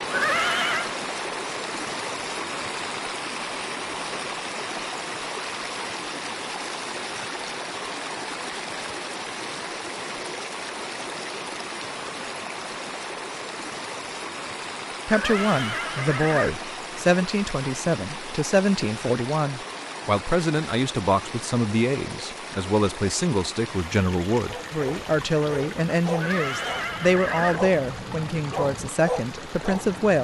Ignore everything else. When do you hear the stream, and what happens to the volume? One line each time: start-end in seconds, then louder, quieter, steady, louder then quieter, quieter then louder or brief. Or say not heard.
0.0-30.1 quieter.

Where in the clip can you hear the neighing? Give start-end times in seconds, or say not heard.
0.1-0.9, 15.1-16.5, 26.1-27.6.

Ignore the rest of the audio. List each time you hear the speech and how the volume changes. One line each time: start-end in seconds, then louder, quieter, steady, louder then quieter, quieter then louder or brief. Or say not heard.
15.1-30.1 steady.